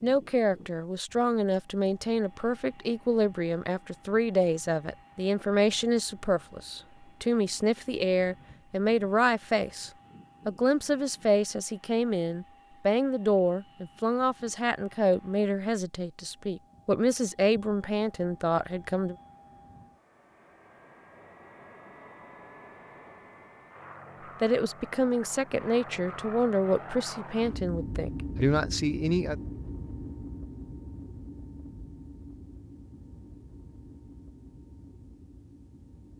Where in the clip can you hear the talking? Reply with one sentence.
The talking can be heard from 0.0 to 19.1 s and from 24.4 to 29.4 s.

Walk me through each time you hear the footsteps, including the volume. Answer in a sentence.
The footsteps can't be heard in this clip.